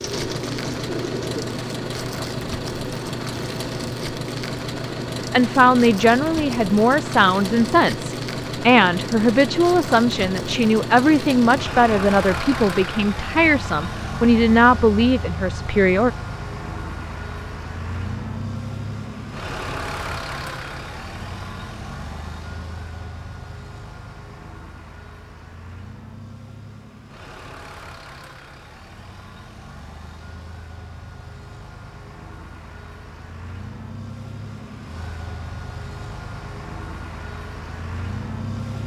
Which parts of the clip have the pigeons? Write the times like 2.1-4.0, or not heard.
0.0-1.6.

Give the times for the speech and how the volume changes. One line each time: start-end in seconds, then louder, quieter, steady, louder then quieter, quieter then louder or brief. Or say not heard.
5.3-16.1 steady.